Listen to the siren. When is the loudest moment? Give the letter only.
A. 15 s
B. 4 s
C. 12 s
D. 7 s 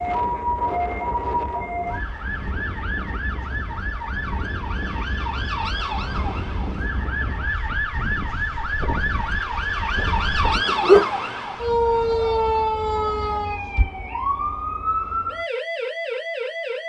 C.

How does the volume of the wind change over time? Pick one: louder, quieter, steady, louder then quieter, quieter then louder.
steady.